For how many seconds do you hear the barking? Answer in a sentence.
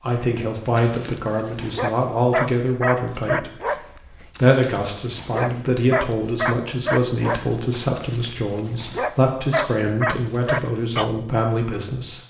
The barking can be heard for 11 seconds in total.